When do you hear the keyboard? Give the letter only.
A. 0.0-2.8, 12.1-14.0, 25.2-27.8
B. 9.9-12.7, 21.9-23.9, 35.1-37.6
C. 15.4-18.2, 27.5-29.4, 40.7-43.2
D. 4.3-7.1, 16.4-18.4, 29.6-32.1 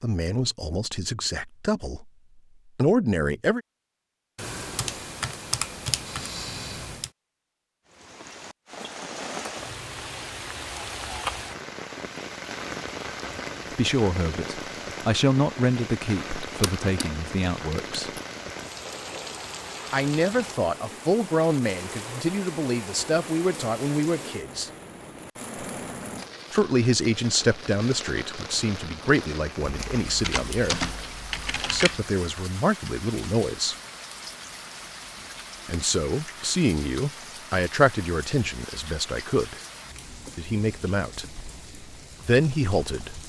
D.